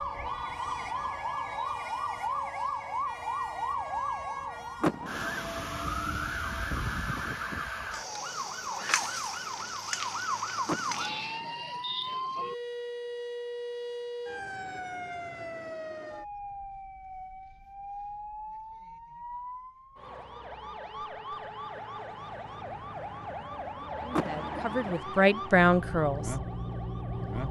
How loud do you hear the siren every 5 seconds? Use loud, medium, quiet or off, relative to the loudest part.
loud, loud, loud, medium, medium, loud.